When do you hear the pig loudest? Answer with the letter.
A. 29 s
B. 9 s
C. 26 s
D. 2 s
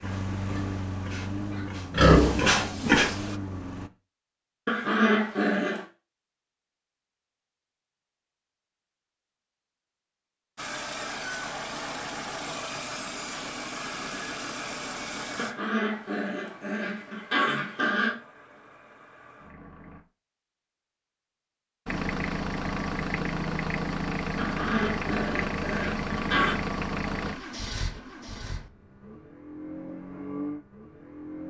D.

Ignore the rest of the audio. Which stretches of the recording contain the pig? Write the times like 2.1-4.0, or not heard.
0.0-3.4.